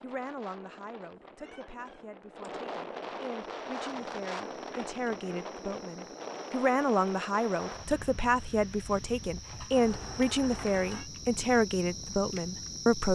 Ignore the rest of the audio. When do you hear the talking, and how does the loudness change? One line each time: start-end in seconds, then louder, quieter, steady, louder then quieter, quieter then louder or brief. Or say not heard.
0.0-13.0 louder.